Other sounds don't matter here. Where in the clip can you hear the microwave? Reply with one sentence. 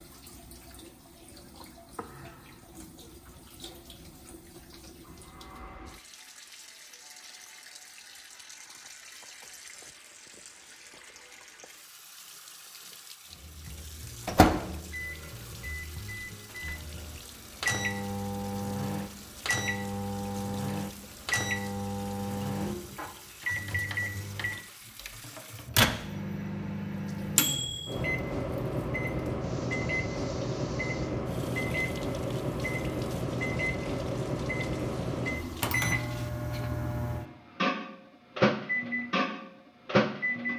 The microwave can be heard from 13.4 to 40.5 s.